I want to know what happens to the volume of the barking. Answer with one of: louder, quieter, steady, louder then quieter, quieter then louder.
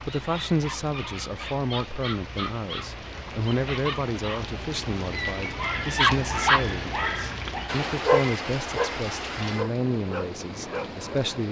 louder then quieter.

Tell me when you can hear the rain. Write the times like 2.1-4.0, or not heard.
0.0-11.4.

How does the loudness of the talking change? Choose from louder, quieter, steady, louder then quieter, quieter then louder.
steady.